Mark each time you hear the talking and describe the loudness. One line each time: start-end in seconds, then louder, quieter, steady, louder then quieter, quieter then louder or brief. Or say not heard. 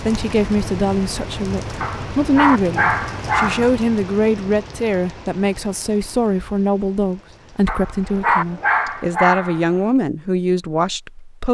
0.1-11.4 steady.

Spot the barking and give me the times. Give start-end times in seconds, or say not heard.
1.8-3.8, 7.7-9.8.